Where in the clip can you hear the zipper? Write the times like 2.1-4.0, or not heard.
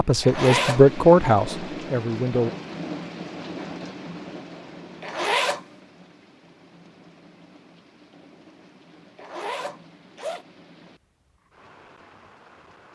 0.2-0.8, 5.0-5.6, 9.2-10.4.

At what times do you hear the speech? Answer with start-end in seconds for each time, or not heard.
0.0-2.5.